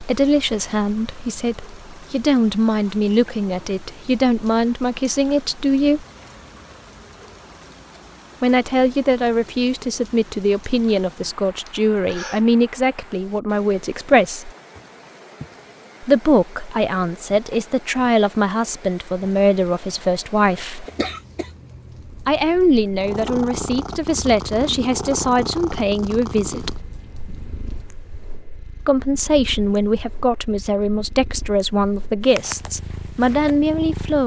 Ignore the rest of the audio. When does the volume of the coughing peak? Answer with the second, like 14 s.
21 s.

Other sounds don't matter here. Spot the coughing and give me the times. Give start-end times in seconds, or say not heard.
11.7-12.4, 20.9-21.4.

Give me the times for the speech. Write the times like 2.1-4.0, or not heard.
0.0-6.0, 8.4-14.5, 16.0-20.9, 22.2-26.9, 28.9-34.2.